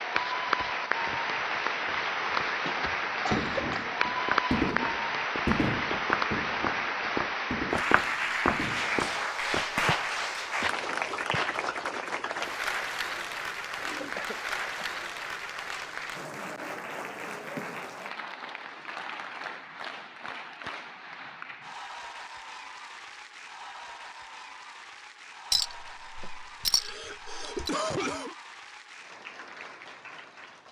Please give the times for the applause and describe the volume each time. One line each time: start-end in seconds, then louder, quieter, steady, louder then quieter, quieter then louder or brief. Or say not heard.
0.0-30.6 quieter.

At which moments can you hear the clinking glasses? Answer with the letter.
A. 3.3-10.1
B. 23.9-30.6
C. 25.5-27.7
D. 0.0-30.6
C.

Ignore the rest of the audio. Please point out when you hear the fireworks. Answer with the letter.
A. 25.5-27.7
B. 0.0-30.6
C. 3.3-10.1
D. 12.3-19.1
C.